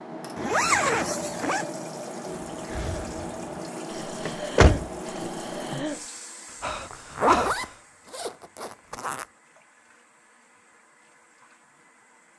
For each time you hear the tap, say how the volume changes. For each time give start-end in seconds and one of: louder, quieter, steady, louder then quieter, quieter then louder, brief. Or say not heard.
0.0-12.3 quieter.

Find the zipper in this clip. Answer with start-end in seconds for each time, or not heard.
0.3-1.6, 6.9-9.2.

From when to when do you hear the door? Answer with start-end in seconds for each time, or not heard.
4.2-5.3.